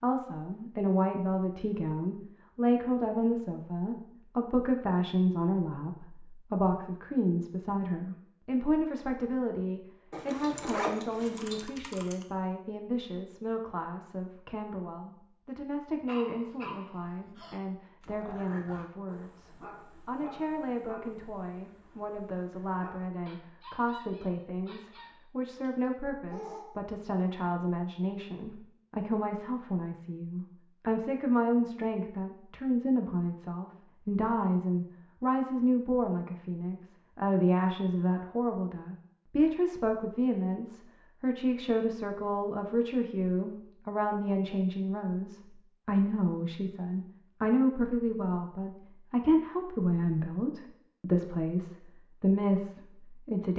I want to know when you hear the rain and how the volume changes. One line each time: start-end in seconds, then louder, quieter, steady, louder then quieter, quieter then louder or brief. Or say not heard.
not heard.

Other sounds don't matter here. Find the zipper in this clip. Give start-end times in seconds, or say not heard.
10.1-11.7.